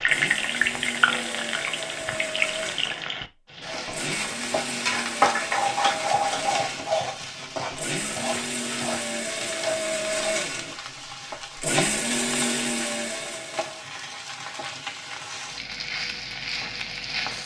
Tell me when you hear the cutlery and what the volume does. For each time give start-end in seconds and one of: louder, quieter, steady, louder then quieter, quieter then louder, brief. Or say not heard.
not heard.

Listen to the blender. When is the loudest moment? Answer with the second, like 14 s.
12 s.